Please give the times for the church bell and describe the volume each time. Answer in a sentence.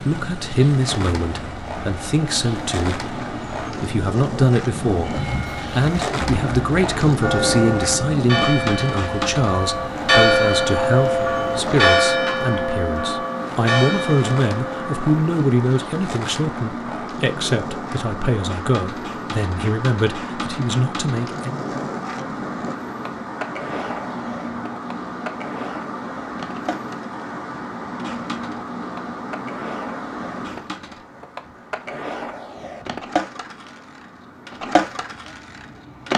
The church bell can be heard from 5.0 to 15.2 s, getting louder then quieter.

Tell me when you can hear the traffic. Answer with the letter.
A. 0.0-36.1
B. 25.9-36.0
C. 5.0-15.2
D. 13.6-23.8
A.